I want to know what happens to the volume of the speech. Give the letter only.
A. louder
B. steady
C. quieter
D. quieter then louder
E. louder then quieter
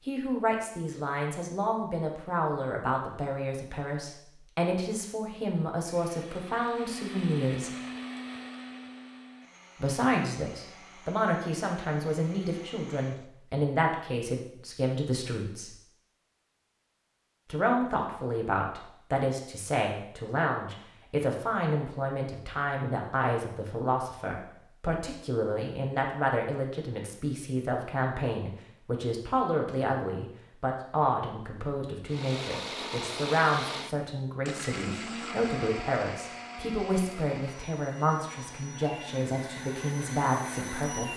B.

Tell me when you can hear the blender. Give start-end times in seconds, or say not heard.
5.8-13.3, 32.0-41.1.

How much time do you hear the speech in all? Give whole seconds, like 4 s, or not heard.
37 s.